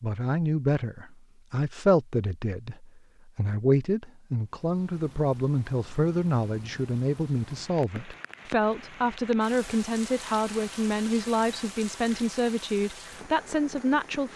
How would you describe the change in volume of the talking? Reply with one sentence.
The loudness of the talking stays about the same.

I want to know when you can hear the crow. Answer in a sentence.
The crow can't be heard in this clip.